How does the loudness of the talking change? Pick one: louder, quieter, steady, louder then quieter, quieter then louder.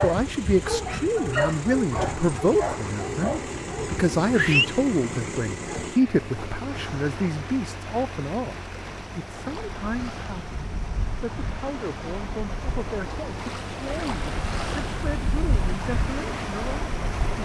quieter.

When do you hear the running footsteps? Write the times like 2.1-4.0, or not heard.
not heard.